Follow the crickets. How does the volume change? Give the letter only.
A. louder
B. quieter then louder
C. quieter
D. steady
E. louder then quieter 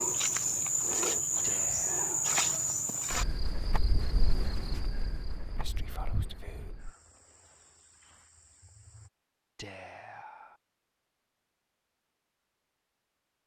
C.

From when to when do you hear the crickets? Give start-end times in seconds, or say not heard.
0.0-9.1.